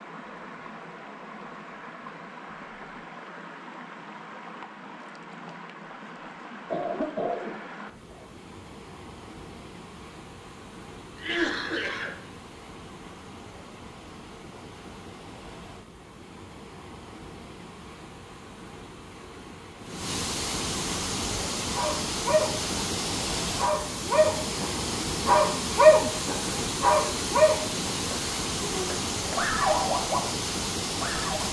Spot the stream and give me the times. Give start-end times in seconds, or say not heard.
0.0-31.4.